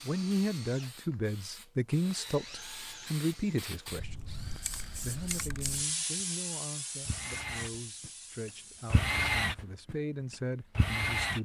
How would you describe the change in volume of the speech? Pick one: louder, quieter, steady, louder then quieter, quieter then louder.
quieter then louder.